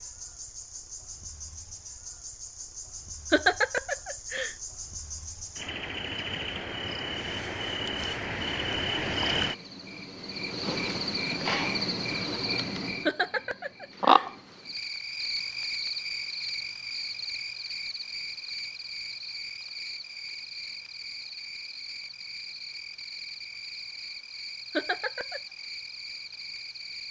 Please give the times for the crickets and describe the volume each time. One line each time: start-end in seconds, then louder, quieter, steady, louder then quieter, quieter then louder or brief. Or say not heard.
0.0-27.0 louder then quieter.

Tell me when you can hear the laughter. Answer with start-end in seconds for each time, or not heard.
3.3-4.5, 13.1-14.2, 24.7-25.4.